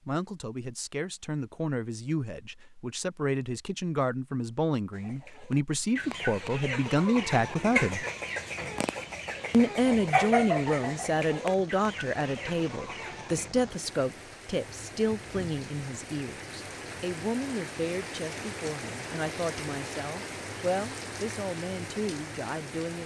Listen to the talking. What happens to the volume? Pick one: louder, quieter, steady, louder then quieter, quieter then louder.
louder then quieter.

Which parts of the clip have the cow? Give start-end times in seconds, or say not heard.
not heard.